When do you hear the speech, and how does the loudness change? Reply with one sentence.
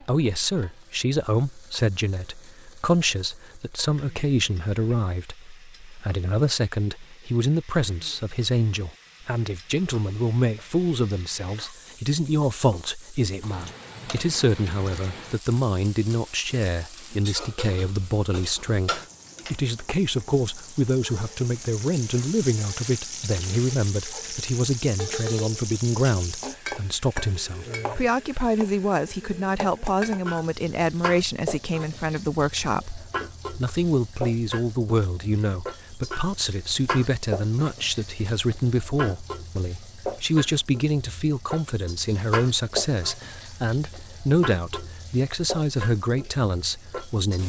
You can hear the speech from 0.0 to 47.4 s, at a steady volume.